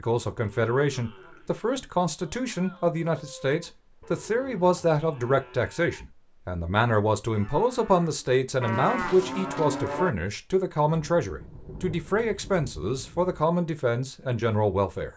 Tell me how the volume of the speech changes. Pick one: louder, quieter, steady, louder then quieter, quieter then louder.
steady.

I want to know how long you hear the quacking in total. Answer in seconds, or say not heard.
not heard.